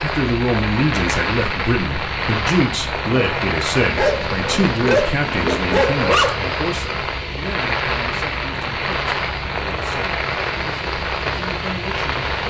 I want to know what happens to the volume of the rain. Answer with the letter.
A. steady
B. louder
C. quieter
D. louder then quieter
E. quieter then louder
A.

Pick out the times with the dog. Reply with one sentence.
The dog can be heard from 4.0 to 6.4 s.